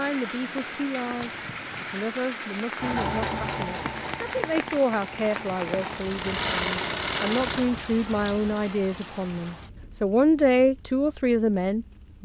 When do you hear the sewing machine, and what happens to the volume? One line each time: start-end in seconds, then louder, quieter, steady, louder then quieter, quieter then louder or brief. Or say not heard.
2.8-7.7 quieter then louder.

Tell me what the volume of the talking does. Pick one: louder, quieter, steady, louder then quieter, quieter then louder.
louder.